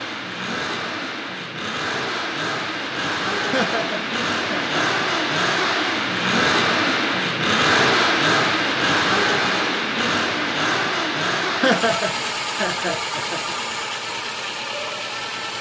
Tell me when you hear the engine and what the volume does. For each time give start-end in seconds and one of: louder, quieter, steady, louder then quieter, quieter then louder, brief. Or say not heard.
0.0-15.5 louder then quieter.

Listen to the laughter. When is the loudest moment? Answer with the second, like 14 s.
12 s.